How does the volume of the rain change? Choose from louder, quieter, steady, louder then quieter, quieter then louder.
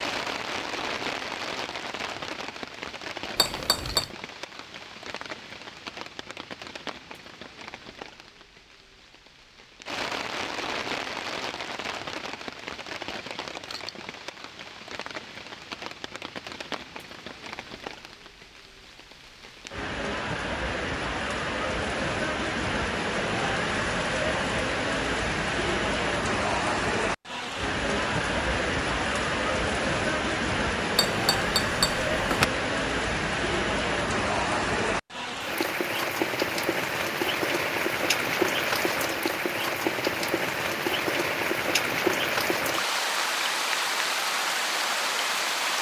louder.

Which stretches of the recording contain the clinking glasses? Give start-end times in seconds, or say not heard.
3.4-4.1, 30.9-32.5.